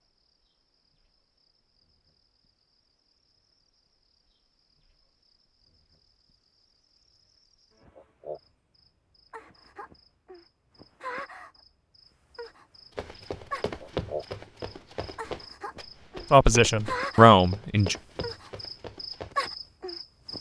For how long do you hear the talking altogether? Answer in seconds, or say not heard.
2 s.